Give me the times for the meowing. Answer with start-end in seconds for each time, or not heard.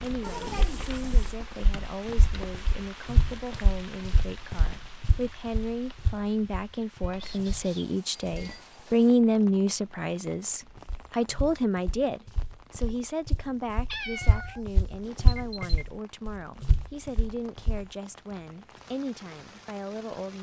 0.2-1.4, 7.0-8.7, 13.8-15.8.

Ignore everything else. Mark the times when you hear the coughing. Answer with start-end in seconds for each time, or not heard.
not heard.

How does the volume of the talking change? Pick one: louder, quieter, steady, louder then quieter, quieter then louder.
louder then quieter.